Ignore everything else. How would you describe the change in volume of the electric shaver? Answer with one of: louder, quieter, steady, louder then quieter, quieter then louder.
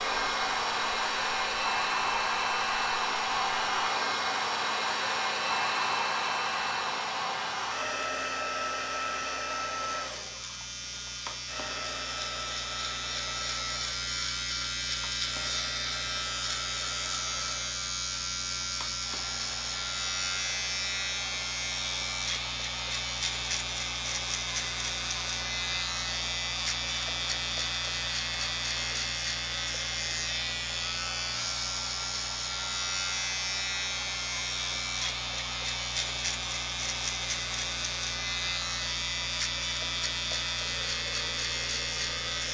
louder.